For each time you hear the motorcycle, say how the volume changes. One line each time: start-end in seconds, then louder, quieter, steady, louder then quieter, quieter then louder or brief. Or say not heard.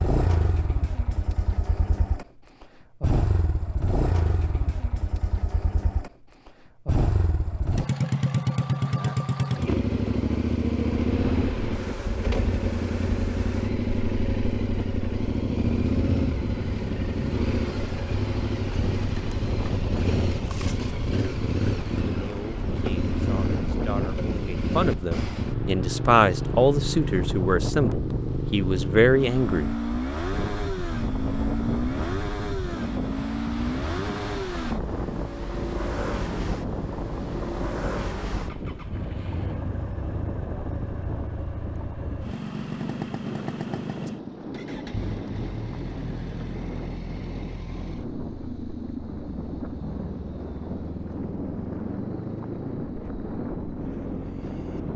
0.0-54.9 quieter.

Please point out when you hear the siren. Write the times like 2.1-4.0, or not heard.
not heard.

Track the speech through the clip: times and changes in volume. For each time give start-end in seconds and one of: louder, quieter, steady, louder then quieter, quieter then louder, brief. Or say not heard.
22.1-29.8 louder.